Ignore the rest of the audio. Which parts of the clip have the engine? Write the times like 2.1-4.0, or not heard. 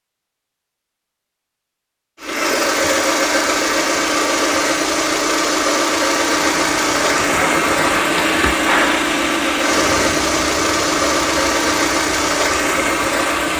2.2-13.5.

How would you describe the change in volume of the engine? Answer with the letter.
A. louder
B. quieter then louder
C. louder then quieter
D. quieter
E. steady
E.